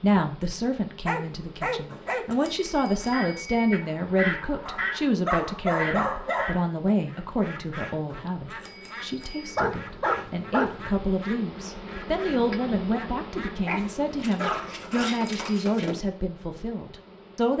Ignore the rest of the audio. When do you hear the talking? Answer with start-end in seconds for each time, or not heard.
0.0-17.5.